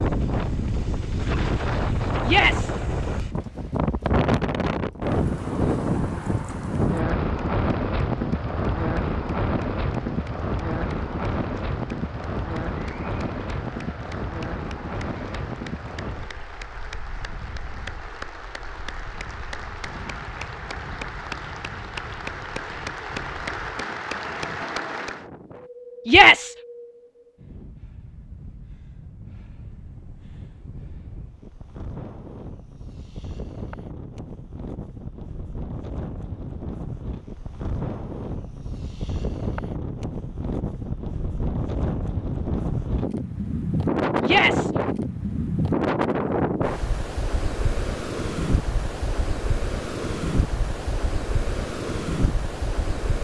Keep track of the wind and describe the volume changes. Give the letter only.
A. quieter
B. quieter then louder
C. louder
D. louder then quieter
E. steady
B.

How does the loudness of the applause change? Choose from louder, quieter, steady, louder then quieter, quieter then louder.
louder.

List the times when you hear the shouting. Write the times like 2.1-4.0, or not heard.
2.2-2.7, 26.1-26.6, 44.2-44.7.